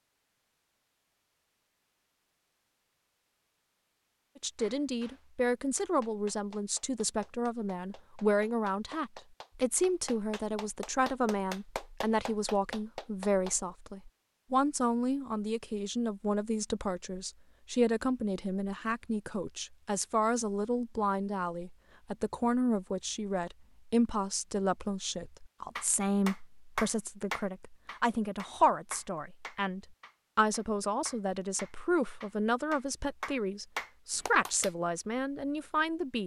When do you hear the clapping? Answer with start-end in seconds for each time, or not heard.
4.5-13.6, 25.8-34.7.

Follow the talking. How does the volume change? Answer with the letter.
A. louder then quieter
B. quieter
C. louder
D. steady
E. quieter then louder
D.